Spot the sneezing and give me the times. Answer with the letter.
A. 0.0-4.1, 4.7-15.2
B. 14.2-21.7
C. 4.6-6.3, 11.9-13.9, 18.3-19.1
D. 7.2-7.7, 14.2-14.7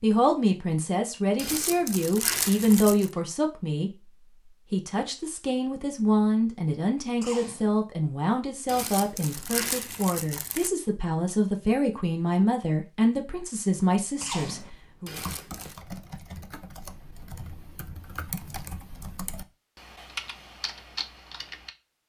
D.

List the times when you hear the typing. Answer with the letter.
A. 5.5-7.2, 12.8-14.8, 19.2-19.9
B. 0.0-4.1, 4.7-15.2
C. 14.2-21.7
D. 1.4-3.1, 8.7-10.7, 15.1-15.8
C.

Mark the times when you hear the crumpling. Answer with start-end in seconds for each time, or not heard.
1.4-3.1, 8.7-10.7, 15.1-15.8.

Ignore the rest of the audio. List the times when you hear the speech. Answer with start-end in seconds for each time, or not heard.
0.0-4.1, 4.7-15.2.